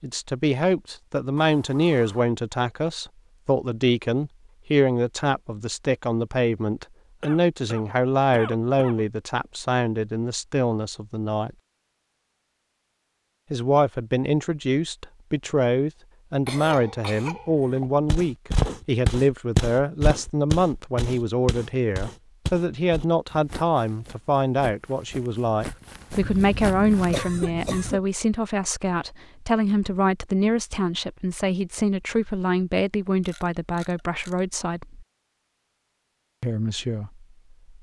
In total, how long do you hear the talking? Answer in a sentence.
You can hear the talking for 34 seconds altogether.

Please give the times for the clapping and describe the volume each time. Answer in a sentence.
You can't hear the clapping here.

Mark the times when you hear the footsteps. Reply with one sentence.
The footsteps can be heard from 18.1 to 27.7 s.